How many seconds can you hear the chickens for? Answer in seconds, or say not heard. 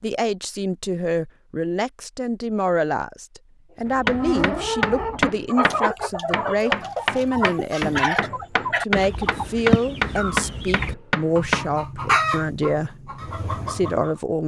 10 s.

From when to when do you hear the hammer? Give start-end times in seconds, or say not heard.
3.9-11.8.